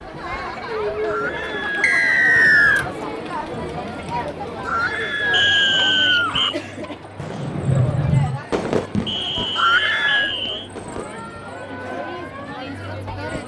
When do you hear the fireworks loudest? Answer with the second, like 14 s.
8 s.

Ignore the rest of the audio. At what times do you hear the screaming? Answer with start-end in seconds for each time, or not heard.
1.1-2.9, 4.7-6.5, 9.6-10.3.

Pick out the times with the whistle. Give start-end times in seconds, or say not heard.
1.8-2.9, 5.3-6.5, 9.1-10.7.